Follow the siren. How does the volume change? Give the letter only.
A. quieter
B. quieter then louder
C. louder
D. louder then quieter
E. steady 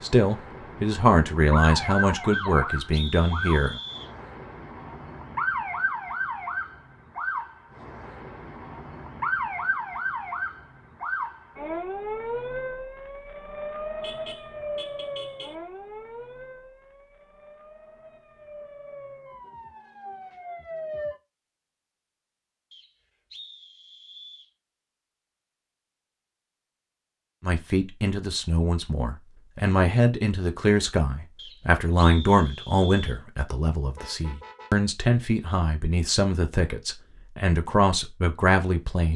A.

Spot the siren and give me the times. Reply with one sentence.
The siren can be heard from 0.0 to 21.2 s.